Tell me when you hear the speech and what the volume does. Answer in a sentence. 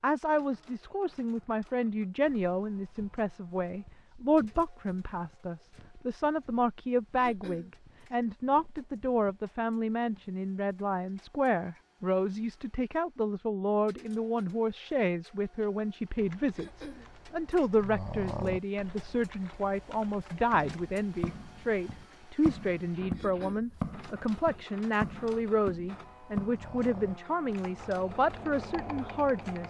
The speech can be heard from 0.0 to 29.6 s, at a steady volume.